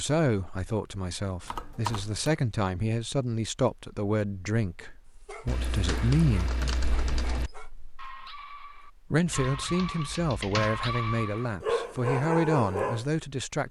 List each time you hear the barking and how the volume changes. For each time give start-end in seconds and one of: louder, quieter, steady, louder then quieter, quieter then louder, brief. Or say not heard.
5.2-13.1 louder.